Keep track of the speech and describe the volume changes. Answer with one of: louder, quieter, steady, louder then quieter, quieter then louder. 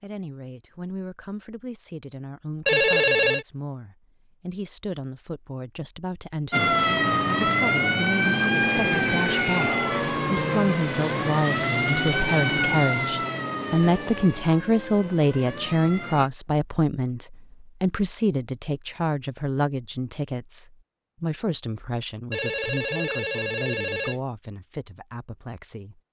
louder then quieter.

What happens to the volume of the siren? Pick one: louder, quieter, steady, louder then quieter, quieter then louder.
quieter.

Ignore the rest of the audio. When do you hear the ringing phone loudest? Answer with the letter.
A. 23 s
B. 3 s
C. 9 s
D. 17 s
B.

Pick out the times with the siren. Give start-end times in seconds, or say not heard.
6.5-16.3.